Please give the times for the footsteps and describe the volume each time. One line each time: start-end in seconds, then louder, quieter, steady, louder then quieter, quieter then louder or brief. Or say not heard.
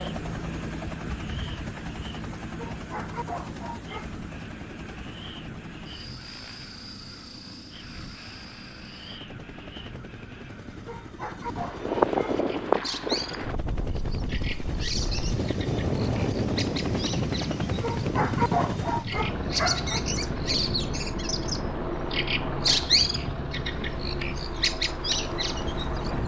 not heard.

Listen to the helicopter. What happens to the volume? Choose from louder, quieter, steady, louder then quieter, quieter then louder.
quieter then louder.